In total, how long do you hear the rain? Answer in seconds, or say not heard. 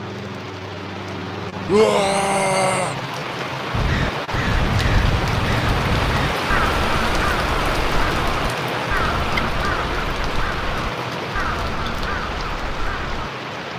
14 s.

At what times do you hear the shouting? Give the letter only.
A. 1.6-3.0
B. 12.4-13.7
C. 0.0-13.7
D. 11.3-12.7
A.